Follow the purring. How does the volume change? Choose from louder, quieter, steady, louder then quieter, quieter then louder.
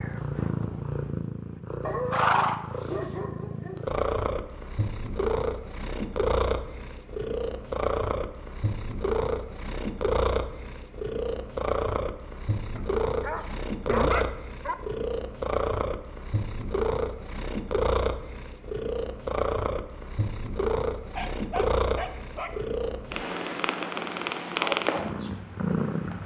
steady.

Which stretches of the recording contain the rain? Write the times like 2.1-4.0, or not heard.
not heard.